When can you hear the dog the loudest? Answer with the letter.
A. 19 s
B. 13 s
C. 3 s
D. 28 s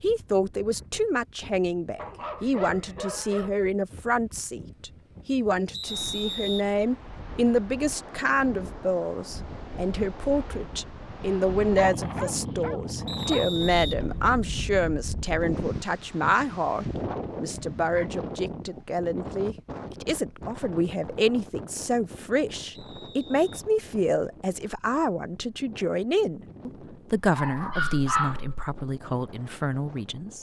D.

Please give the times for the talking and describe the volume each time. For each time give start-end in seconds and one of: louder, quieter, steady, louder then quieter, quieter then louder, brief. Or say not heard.
0.0-30.3 steady.